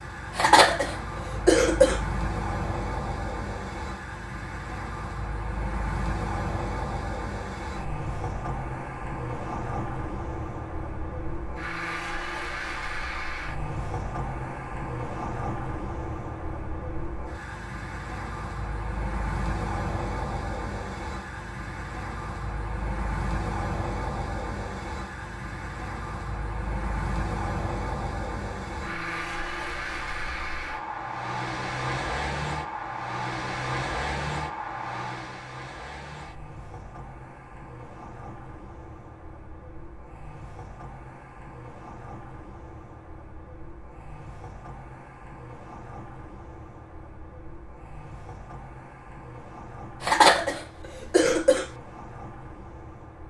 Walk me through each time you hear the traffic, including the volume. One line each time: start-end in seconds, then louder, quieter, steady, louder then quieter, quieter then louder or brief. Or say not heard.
0.0-53.2 quieter.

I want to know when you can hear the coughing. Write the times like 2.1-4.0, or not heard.
0.3-2.0, 50.0-51.6.